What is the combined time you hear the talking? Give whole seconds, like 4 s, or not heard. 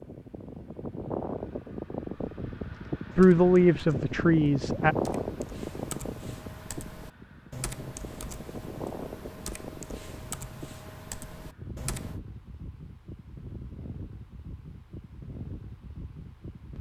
2 s.